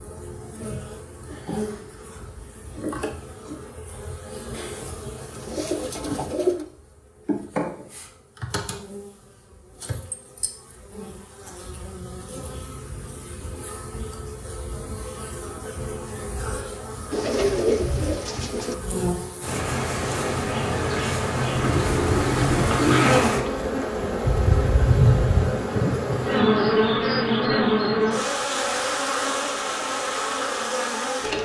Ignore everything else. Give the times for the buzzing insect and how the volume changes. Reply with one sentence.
The buzzing insect can be heard from 0.0 to 31.4 s, getting louder.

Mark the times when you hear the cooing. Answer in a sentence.
You can hear the cooing from 4.5 to 6.7 s, from 17.1 to 18.8 s and from 21.6 to 23.2 s.